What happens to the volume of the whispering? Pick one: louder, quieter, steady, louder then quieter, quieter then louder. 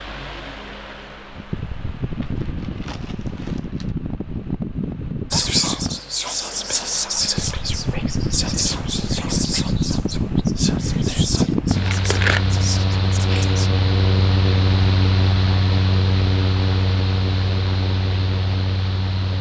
quieter.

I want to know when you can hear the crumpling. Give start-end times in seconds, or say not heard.
2.2-4.0, 11.8-12.5.